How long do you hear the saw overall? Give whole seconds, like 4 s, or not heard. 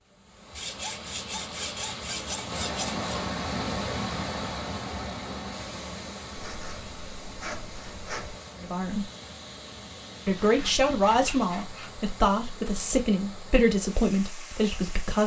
6 s.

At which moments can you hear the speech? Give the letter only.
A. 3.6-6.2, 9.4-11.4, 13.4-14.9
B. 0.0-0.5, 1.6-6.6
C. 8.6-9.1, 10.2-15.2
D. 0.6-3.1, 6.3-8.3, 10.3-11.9
C.